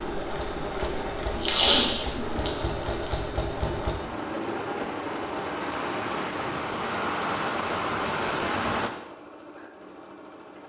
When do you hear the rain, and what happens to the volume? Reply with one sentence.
You can hear the rain from 0.0 to 8.9 s, getting louder.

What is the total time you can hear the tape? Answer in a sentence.
The tape can be heard for 2 seconds in total.